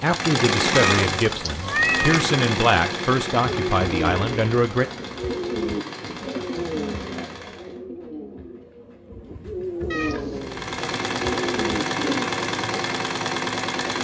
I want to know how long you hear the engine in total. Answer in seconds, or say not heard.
11 s.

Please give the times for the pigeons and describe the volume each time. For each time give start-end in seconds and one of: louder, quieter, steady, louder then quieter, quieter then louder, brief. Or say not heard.
3.5-12.8 quieter then louder.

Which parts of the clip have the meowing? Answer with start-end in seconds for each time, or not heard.
0.7-2.2, 9.9-10.5.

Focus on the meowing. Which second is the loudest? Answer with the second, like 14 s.
2 s.